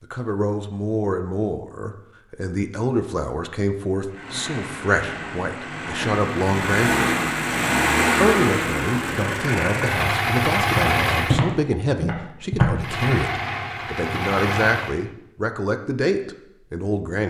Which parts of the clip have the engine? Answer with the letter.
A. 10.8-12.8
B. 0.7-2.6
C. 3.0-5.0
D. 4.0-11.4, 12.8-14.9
D.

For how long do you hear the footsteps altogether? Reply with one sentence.
The footsteps can be heard for 2 seconds in total.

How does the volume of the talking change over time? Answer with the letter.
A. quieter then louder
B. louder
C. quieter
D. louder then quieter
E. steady
E.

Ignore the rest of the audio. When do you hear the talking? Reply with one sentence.
The talking can be heard from 0.0 to 7.0 s and from 8.2 to 17.2 s.